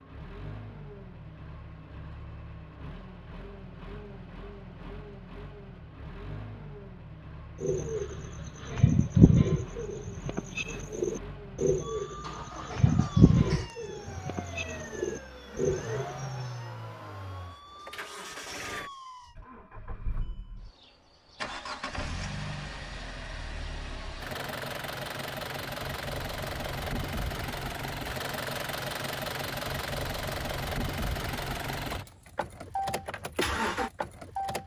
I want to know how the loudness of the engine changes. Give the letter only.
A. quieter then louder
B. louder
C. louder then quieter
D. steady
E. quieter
B.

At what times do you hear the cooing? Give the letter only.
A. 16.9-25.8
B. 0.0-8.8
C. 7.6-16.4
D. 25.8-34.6
C.